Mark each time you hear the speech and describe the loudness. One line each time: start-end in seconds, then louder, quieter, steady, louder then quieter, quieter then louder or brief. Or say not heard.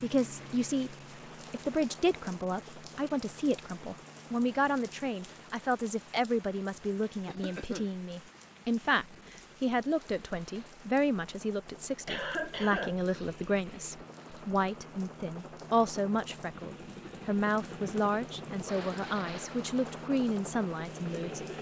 0.0-21.4 steady.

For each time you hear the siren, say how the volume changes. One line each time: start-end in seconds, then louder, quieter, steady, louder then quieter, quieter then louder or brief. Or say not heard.
not heard.